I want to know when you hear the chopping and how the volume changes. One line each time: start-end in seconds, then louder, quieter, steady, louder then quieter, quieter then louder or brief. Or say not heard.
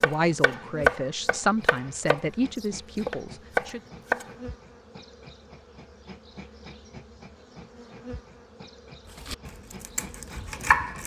0.0-4.2 quieter then louder
9.2-11.0 brief.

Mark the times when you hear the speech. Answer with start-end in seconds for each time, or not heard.
0.0-3.8.